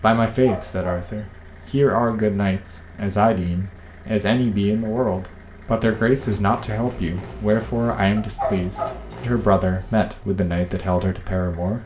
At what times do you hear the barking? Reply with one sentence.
The barking can be heard from 0.2 to 2.0 s and from 8.2 to 10.1 s.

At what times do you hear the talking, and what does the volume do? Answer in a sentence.
The talking can be heard from 0.0 to 11.8 s, at a steady volume.